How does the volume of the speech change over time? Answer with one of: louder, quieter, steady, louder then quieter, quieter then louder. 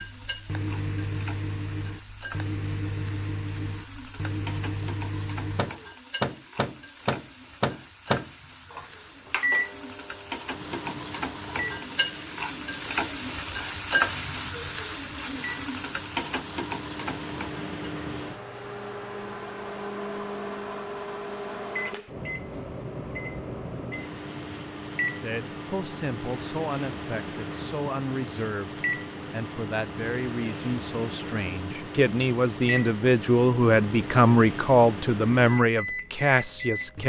louder.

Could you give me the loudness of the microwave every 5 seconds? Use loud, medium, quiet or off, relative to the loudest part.
medium, loud, quiet, medium, medium, medium, medium, medium.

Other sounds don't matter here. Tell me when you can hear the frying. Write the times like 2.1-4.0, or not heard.
0.0-17.9.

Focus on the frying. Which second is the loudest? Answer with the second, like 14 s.
14 s.